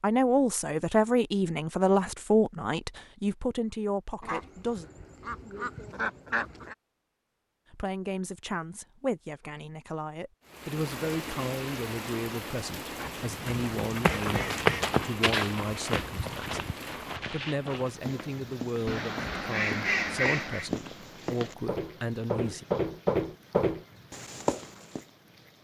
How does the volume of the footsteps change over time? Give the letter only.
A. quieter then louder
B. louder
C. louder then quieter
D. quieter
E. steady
A.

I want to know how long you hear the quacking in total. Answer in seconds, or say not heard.
6 s.